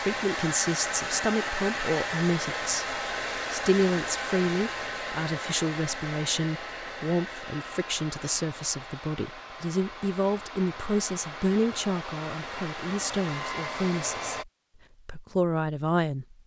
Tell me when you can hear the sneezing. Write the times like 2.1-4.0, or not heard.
not heard.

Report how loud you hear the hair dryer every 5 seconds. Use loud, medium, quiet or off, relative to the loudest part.
loud, medium, medium, off.